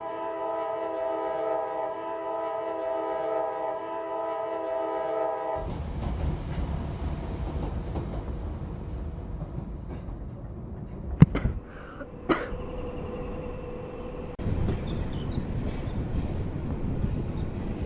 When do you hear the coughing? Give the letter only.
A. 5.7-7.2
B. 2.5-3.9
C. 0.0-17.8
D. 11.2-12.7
D.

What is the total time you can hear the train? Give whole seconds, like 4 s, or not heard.
18 s.